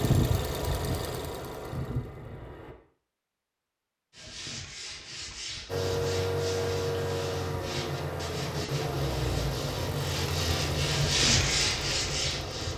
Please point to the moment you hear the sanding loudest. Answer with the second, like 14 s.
11 s.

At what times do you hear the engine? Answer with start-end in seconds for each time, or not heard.
0.0-2.8, 5.7-12.7.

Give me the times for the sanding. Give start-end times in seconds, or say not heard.
4.1-12.7.